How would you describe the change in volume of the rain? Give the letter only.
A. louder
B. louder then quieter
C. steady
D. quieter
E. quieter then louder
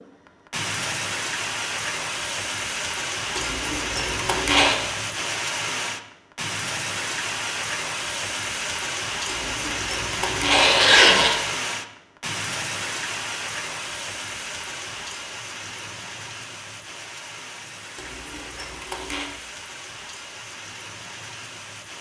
D.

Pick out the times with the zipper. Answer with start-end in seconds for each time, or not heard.
3.4-4.8, 9.2-11.3, 17.9-19.2.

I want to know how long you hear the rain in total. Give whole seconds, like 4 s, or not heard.
22 s.